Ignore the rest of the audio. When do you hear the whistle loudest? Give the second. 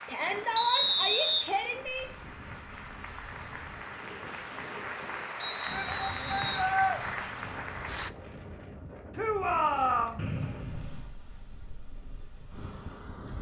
1 s.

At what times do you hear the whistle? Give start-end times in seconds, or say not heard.
0.6-1.9, 5.4-6.7, 10.2-11.2.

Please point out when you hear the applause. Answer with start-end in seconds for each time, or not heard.
0.0-8.1.